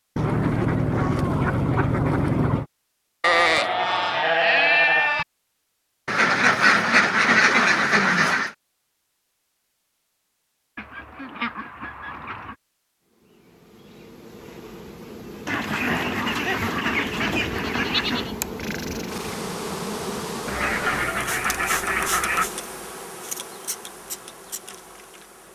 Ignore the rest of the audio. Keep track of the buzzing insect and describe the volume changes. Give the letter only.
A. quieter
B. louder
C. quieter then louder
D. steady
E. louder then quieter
E.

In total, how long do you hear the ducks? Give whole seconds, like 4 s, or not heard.
12 s.